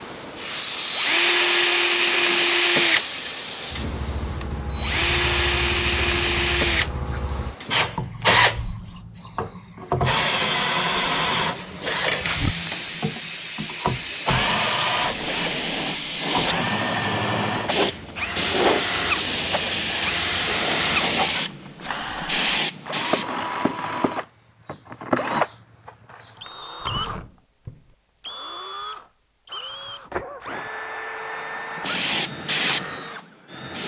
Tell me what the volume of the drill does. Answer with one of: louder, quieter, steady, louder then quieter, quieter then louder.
quieter.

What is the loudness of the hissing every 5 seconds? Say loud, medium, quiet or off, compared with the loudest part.
medium, medium, medium, loud, loud, off, loud.